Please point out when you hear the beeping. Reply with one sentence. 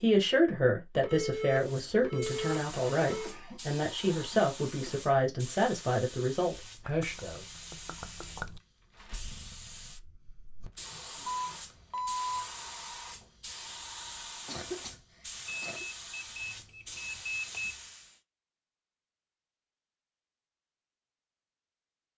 The beeping can be heard from 1.0 to 3.4 s, from 11.2 to 12.3 s and from 15.3 to 17.8 s.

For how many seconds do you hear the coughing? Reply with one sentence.
You can hear the coughing for 4 seconds altogether.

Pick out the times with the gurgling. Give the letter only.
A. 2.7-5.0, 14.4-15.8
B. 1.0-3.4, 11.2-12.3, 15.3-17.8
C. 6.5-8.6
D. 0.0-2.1
C.